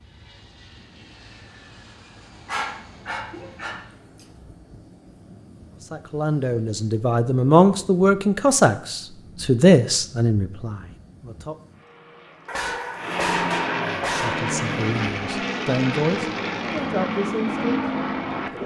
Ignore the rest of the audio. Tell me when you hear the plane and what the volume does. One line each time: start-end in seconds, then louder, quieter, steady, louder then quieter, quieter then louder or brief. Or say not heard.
0.0-18.6 louder.